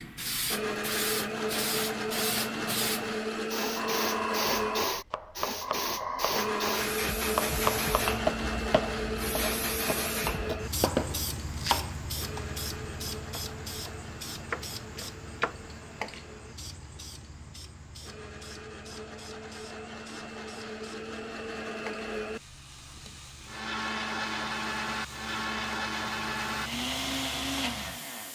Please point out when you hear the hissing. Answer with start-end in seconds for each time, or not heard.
0.0-28.3.